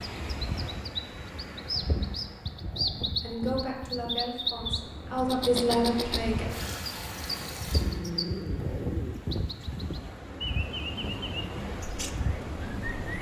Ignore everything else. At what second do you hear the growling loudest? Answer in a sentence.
The volume of the growling peaks at 8 seconds.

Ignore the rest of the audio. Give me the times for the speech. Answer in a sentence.
You can hear the speech from 3.2 to 6.5 s.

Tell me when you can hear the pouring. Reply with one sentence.
The pouring can be heard from 6.3 to 8.0 s.